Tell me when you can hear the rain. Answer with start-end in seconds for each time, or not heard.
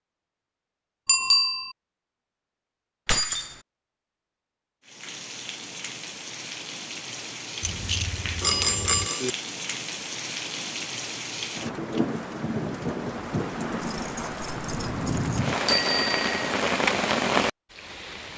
4.8-18.3.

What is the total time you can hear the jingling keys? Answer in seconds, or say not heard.
4 s.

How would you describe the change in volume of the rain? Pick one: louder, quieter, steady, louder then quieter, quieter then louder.
louder.